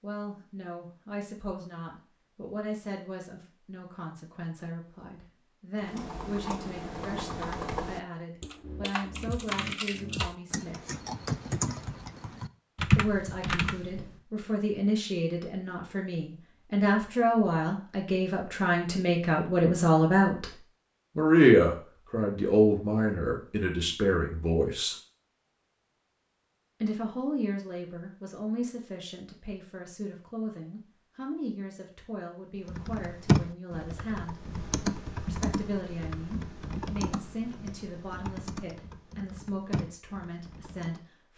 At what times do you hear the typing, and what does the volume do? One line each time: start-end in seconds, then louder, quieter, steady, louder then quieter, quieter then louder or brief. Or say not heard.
5.8-14.2 louder
32.6-41.0 quieter.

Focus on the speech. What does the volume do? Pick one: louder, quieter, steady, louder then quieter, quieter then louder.
louder then quieter.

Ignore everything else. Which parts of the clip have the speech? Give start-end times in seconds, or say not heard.
0.0-10.8, 12.9-20.4, 21.1-24.9, 26.8-34.4, 35.2-41.3.